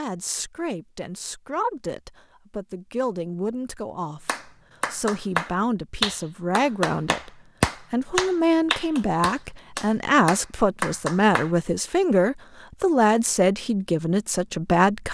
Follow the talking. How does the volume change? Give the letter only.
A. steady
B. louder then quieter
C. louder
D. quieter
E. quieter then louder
C.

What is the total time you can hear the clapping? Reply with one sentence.
The clapping can be heard for 7 seconds in total.